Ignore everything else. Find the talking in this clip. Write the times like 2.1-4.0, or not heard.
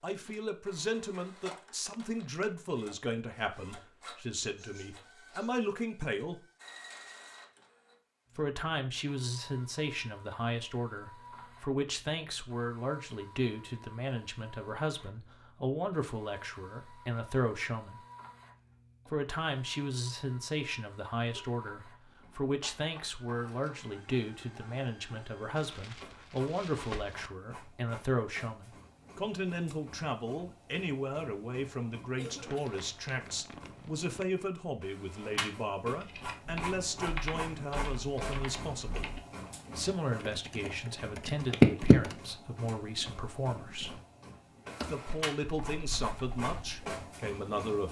0.0-6.4, 8.3-18.0, 19.1-39.1, 39.8-44.0, 44.8-47.8.